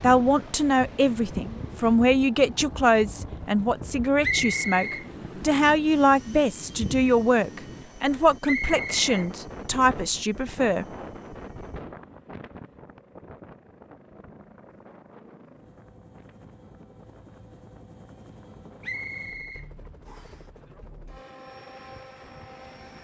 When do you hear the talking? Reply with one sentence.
The talking can be heard from 0.0 to 10.8 s.